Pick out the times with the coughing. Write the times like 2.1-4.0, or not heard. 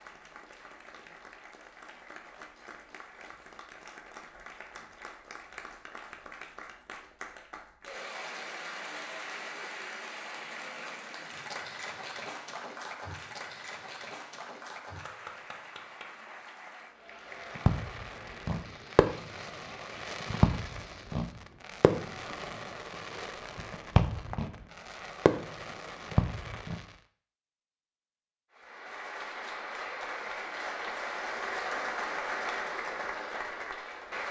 not heard.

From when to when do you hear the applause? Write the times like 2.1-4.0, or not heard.
0.0-21.1, 28.5-34.2.